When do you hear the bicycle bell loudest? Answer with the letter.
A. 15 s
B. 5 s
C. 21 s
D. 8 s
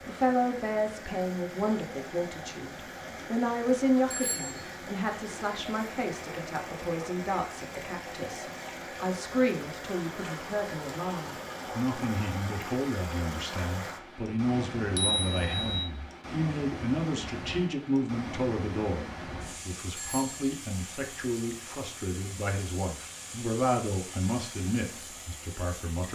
A.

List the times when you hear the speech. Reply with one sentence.
The speech can be heard from 0.1 to 26.1 s.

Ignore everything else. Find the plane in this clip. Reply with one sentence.
You can't hear the plane here.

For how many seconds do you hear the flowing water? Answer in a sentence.
The flowing water can be heard for 26 seconds in total.